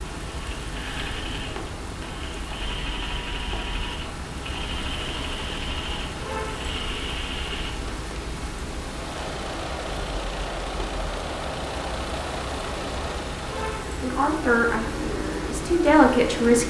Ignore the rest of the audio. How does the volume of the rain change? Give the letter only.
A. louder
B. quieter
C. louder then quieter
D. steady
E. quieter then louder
D.